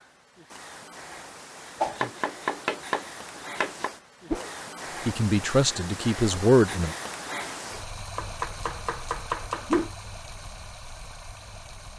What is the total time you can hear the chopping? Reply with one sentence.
You can hear the chopping for 4 seconds altogether.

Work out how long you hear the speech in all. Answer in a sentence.
You can hear the speech for 2 seconds altogether.